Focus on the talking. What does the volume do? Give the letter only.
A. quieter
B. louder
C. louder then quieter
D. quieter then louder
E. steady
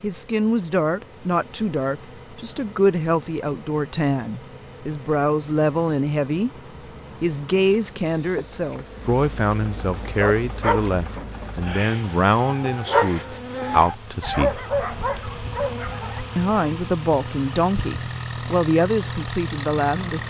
E.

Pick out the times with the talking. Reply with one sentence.
The talking can be heard from 0.0 to 6.5 s, from 7.2 to 14.6 s and from 16.4 to 20.2 s.